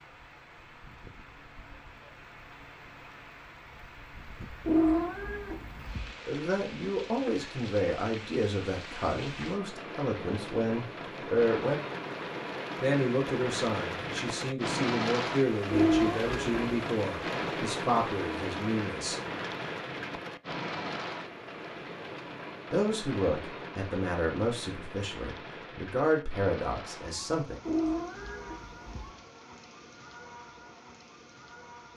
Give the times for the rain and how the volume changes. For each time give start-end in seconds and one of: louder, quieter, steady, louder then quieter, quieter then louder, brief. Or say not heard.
0.0-31.9 louder then quieter.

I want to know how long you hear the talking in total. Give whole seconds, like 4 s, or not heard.
17 s.